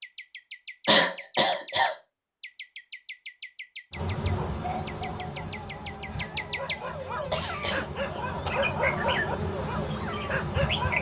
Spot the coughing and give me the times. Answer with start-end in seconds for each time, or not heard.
0.8-1.9, 6.1-7.8.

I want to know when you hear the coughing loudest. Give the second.
1 s.